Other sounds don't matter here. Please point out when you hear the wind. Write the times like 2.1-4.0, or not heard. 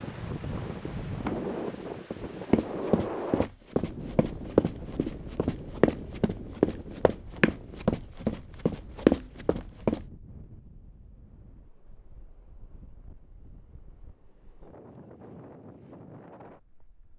0.0-17.1.